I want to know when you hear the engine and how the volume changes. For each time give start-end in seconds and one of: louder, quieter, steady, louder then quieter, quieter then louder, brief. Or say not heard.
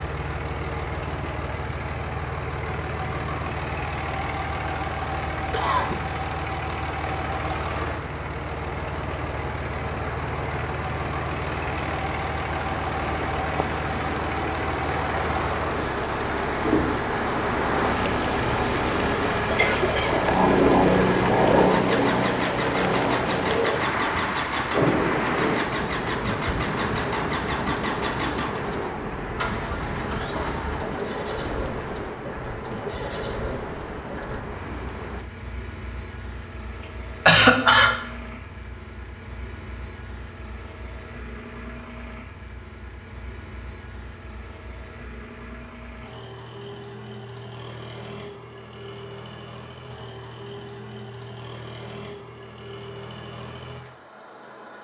0.0-54.7 quieter.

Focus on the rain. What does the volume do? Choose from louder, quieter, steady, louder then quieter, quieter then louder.
louder then quieter.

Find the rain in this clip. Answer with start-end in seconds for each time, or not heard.
0.0-35.3.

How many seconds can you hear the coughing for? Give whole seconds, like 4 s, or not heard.
2 s.